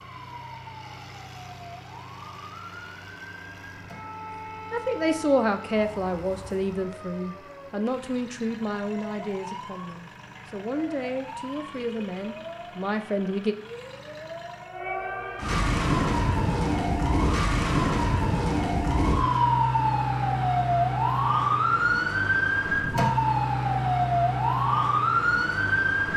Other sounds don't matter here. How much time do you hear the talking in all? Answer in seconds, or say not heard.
9 s.